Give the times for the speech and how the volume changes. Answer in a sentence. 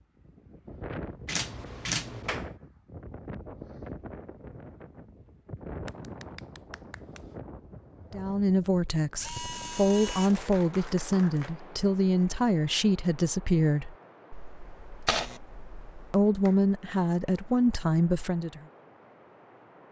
You can hear the speech from 8.1 to 13.9 s, at a steady volume; and briefly from 16.1 to 18.6 s.